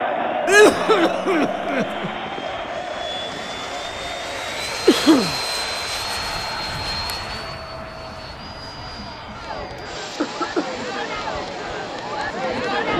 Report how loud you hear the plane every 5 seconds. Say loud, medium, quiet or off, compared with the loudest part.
loud, loud, medium.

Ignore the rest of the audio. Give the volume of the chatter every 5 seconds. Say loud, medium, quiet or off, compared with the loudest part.
loud, medium, loud.